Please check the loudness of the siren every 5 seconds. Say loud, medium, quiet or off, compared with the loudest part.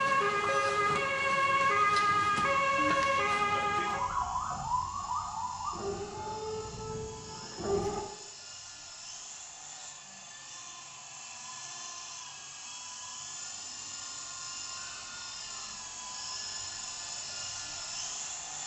loud, medium, off, off.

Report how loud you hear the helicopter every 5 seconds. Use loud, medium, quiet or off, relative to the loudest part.
medium, medium, loud, loud.